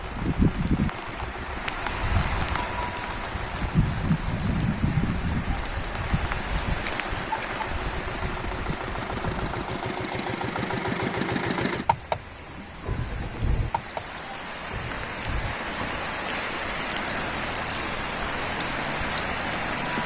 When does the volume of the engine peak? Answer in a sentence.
The loudest moment of the engine is at 11 seconds.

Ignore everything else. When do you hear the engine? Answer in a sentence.
You can hear the engine from 0.0 to 20.0 s.